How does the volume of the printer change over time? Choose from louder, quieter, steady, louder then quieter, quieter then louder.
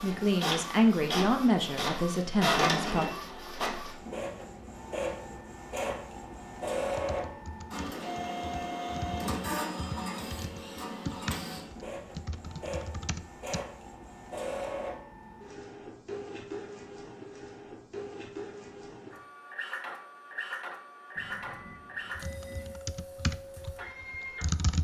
quieter.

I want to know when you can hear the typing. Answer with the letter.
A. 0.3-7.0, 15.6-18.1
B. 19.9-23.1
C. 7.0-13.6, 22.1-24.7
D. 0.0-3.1
C.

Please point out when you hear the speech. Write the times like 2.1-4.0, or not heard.
0.0-3.1.